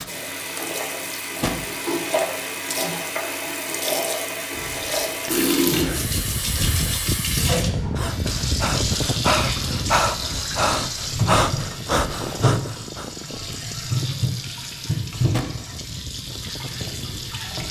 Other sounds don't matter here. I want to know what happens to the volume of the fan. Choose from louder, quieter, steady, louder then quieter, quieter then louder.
quieter.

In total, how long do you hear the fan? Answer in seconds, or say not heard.
12 s.